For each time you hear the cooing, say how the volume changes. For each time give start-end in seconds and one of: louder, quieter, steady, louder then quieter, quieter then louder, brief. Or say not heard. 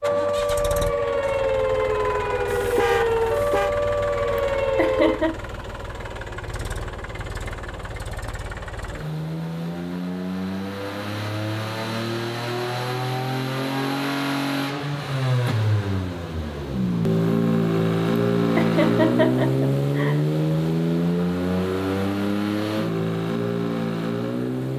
not heard.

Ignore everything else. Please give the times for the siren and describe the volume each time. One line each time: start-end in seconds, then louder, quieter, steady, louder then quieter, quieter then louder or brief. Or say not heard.
0.0-5.2 steady.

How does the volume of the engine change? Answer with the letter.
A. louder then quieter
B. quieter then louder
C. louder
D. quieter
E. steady
C.